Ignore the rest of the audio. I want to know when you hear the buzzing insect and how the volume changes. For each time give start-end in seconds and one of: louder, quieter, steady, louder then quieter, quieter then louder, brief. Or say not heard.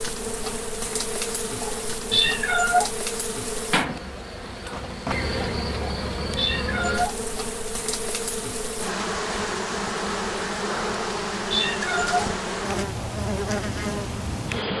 0.0-14.7 steady.